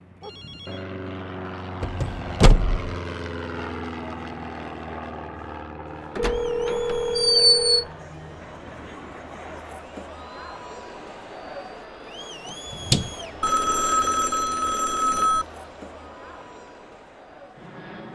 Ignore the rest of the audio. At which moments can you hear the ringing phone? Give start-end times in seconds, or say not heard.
0.2-0.8, 6.2-7.8, 13.4-15.4.